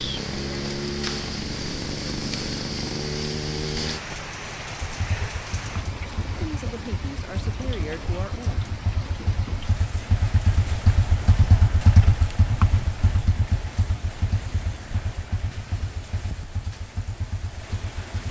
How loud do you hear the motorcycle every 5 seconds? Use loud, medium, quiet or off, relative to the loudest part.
loud, medium, loud, medium.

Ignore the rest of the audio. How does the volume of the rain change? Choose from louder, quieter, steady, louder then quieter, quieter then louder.
quieter.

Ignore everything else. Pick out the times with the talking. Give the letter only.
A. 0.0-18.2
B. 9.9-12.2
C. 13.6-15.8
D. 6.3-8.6
D.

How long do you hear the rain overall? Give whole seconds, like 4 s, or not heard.
18 s.